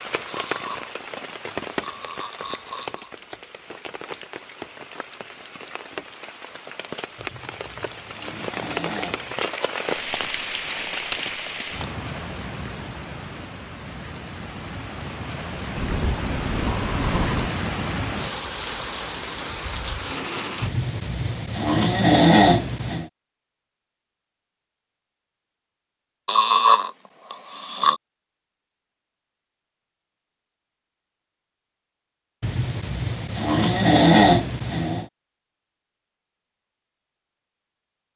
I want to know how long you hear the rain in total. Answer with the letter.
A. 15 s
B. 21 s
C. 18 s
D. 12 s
B.